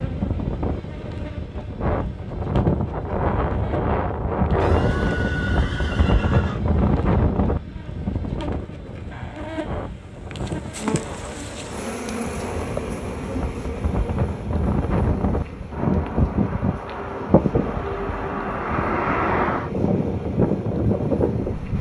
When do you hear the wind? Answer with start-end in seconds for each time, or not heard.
0.0-21.7.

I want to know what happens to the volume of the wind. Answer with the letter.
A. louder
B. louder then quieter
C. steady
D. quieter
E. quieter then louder
E.